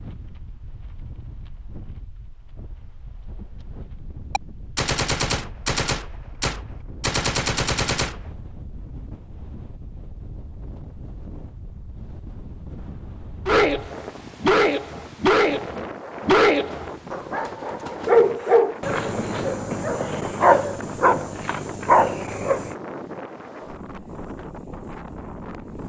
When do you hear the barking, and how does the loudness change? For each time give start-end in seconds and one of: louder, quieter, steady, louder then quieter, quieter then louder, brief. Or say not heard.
13.4-22.8 steady.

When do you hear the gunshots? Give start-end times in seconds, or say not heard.
4.3-8.3, 16.6-18.2.